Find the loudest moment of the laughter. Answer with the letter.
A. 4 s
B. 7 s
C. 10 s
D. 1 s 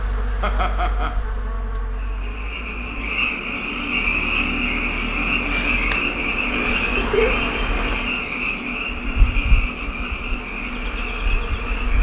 B.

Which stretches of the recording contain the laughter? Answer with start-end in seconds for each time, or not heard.
0.4-1.2, 7.0-8.0.